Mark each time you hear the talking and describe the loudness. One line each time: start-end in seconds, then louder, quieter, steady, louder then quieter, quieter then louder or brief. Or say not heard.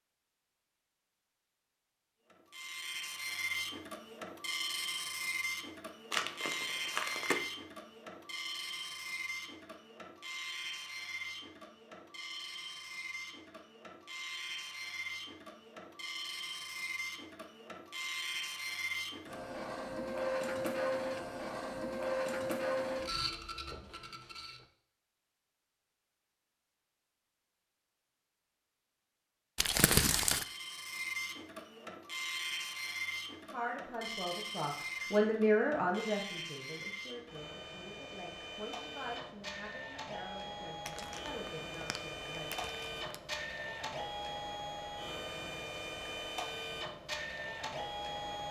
33.5-42.6 quieter.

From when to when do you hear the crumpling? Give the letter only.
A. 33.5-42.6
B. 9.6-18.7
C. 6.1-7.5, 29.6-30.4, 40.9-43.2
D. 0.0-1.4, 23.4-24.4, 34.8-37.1
C.